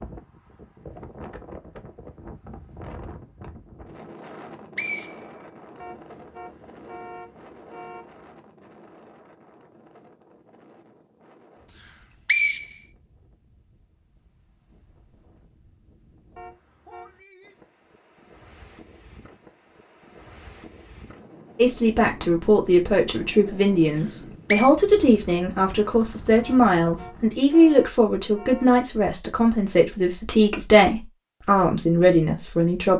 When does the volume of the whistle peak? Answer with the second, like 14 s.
12 s.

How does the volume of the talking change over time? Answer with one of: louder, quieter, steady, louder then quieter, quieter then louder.
steady.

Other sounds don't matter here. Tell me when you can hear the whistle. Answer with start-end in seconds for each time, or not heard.
4.3-5.8, 11.8-12.9, 23.9-24.7.